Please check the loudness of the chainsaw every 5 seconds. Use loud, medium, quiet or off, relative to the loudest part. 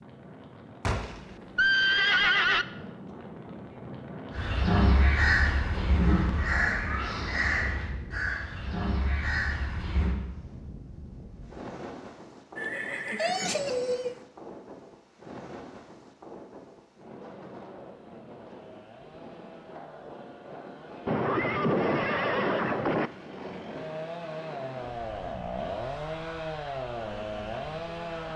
off, off, off, quiet, medium, loud.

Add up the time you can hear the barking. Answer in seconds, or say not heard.
not heard.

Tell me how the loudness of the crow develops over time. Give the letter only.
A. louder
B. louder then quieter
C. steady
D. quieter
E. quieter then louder
D.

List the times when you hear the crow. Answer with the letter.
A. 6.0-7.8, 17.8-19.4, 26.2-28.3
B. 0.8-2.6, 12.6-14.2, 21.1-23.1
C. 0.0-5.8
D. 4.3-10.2
D.